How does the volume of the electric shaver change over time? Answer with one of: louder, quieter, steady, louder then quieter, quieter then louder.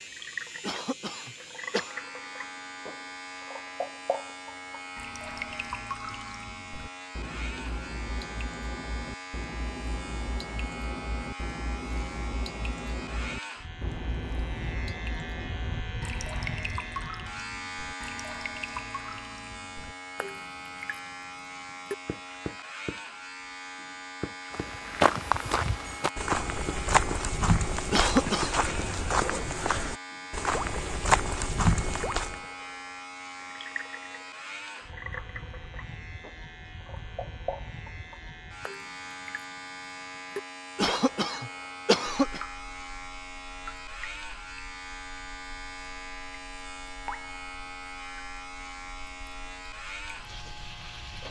steady.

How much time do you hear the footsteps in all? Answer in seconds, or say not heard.
8 s.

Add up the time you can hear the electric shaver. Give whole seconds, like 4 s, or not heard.
51 s.